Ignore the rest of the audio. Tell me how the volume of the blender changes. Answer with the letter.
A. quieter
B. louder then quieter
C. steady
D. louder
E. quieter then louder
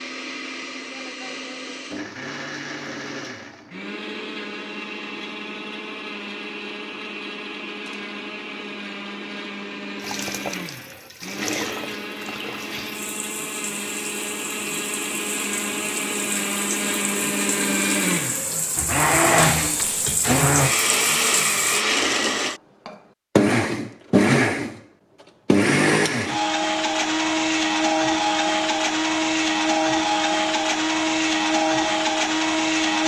D.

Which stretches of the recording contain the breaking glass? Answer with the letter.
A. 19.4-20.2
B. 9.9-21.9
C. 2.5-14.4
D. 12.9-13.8
A.